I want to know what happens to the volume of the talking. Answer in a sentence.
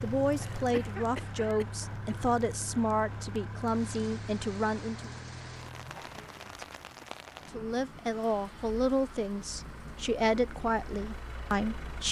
The loudness of the talking stays about the same.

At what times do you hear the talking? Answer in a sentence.
The talking can be heard from 0.0 to 5.1 s and from 7.5 to 12.0 s.